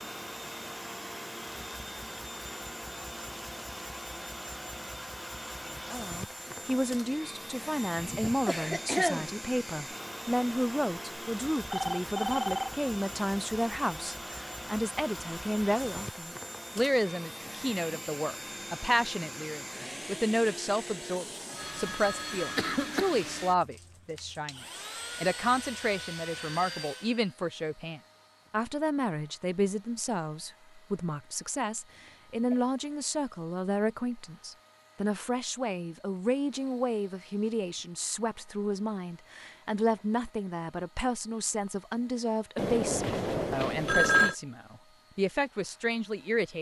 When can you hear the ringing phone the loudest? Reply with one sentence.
The loudest moment of the ringing phone is at 44 seconds.